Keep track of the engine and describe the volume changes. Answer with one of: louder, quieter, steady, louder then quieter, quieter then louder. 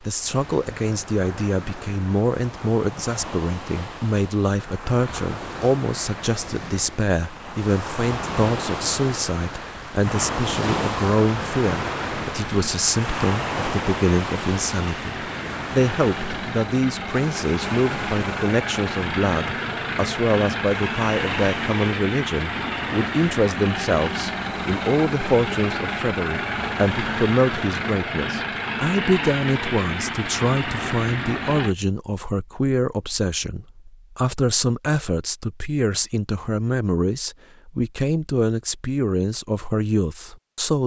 louder.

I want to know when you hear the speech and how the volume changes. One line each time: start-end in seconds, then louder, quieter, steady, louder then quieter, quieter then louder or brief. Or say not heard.
0.0-40.8 steady.